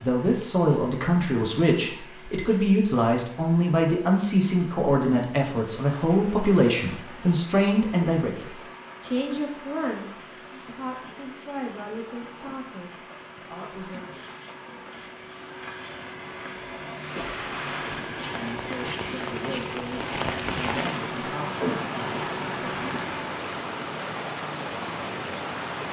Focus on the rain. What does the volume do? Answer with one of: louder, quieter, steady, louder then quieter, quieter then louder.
louder.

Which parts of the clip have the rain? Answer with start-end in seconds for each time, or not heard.
5.7-25.8.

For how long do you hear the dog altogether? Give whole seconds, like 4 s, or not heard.
not heard.